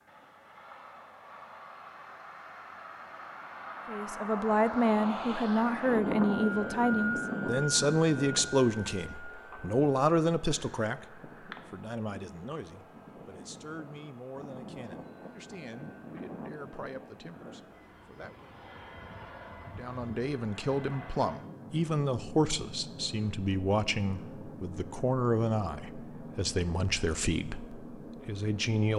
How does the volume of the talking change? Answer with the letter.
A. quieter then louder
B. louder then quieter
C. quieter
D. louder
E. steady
A.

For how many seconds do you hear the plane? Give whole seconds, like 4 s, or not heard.
29 s.